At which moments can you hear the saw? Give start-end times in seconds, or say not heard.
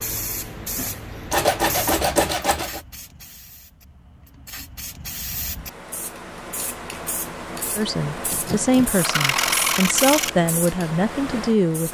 1.3-2.8, 8.3-10.3.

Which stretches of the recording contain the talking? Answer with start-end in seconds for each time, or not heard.
7.8-11.8.